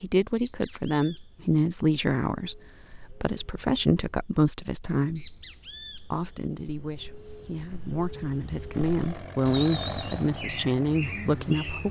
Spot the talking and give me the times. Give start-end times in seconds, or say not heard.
0.0-5.4, 6.1-11.8.